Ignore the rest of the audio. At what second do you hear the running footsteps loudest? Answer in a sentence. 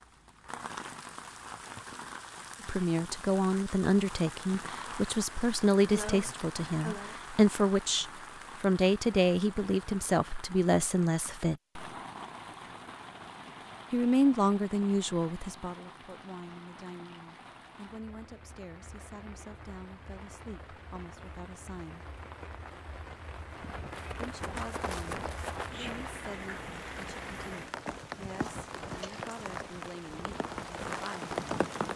The loudest moment of the running footsteps is at 25 seconds.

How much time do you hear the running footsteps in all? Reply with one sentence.
The running footsteps can be heard for 8 seconds in total.